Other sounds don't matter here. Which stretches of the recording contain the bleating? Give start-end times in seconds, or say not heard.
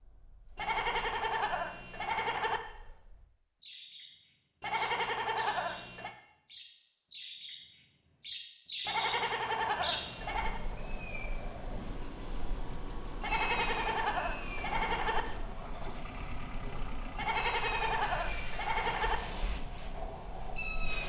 0.6-2.6, 4.6-6.1, 8.8-10.6, 13.2-15.2, 17.1-19.2.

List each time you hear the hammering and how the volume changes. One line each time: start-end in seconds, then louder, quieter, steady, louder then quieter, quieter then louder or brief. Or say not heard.
not heard.